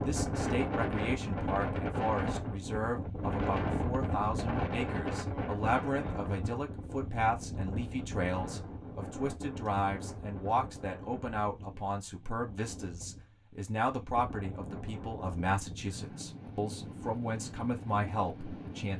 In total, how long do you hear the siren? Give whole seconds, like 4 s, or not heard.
not heard.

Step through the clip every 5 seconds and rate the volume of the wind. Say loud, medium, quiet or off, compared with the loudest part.
loud, medium, quiet, medium.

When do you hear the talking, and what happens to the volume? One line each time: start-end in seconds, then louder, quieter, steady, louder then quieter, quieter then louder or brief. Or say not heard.
0.0-18.9 steady.